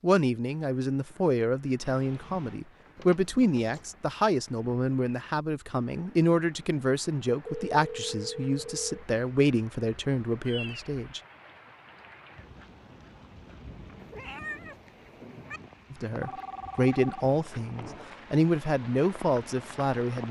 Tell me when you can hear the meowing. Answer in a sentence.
You can hear the meowing from 1.8 to 2.6 s, from 10.4 to 10.9 s and from 14.0 to 15.6 s.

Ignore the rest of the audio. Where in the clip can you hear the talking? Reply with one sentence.
You can hear the talking from 0.0 to 11.2 s and from 15.9 to 20.2 s.